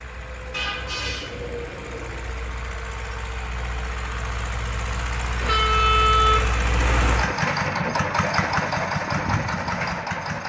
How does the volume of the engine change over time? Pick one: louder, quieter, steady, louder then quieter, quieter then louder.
louder.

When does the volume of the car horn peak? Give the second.
6 s.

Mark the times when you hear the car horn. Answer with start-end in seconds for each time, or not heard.
0.5-1.3, 5.4-7.2.